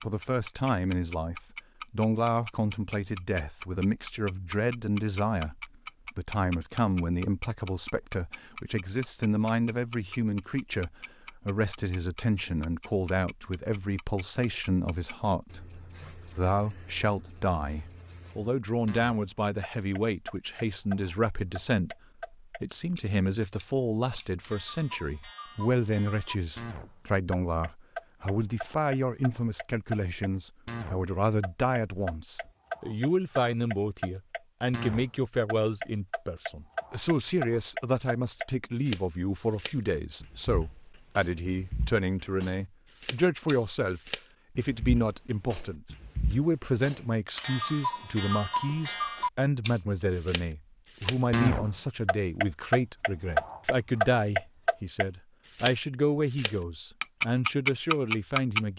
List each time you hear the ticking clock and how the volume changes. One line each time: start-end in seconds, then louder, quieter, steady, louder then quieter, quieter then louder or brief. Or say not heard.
0.0-58.6 quieter then louder.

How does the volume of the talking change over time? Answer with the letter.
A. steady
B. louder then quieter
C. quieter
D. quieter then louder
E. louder
A.